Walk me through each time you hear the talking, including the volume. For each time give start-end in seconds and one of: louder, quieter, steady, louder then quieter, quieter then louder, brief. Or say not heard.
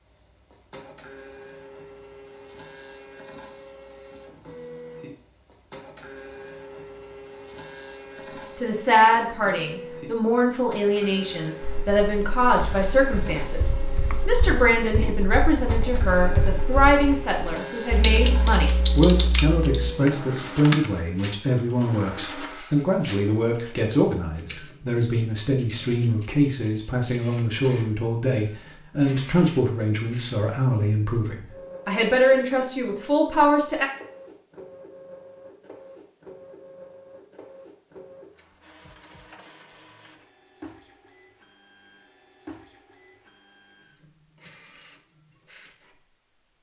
8.2-33.9 steady.